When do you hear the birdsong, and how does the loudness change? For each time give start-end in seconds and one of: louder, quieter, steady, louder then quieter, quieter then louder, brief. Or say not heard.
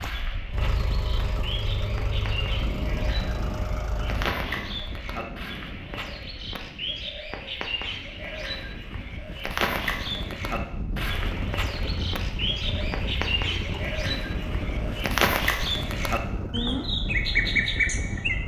0.0-18.4 louder.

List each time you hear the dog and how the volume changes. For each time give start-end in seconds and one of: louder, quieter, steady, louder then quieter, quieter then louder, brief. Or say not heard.
not heard.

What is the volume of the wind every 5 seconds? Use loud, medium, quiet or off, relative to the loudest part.
loud, medium, loud, loud.